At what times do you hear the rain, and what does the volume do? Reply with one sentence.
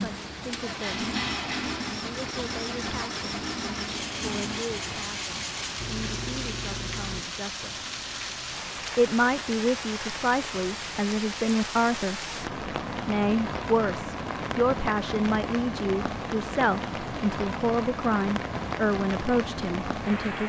The rain can be heard from 0.0 to 20.4 s, at a steady volume.